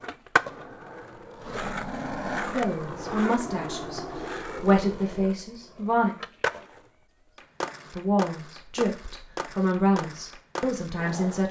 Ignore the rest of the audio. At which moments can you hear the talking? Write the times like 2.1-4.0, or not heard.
2.5-6.2, 8.0-11.4.